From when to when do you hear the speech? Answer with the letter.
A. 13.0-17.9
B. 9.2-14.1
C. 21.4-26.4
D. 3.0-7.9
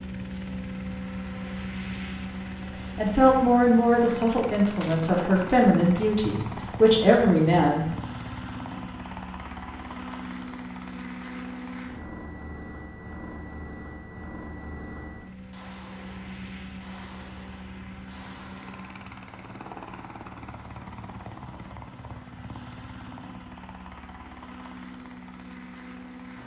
D.